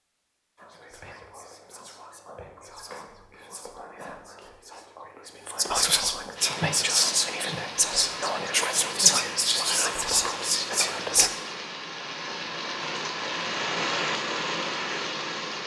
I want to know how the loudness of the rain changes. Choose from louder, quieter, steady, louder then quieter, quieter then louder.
louder.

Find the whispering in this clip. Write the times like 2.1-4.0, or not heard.
0.6-11.3.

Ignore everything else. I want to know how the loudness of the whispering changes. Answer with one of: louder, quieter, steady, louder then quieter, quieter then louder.
louder.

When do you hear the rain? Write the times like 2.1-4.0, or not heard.
6.3-15.6.